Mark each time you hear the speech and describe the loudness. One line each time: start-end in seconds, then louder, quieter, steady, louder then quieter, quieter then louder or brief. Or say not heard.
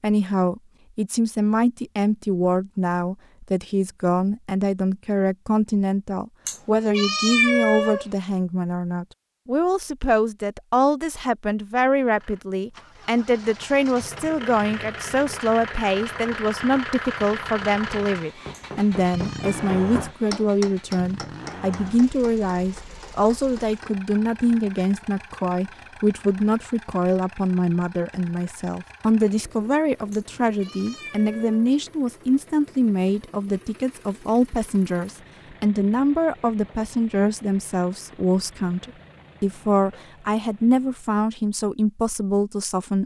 0.0-43.0 steady.